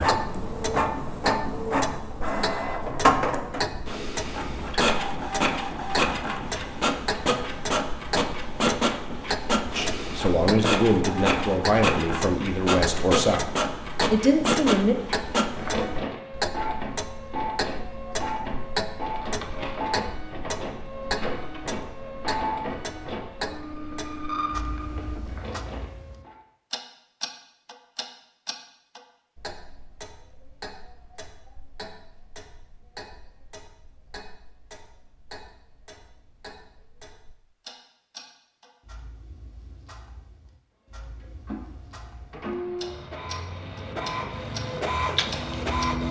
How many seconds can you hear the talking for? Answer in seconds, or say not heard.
5 s.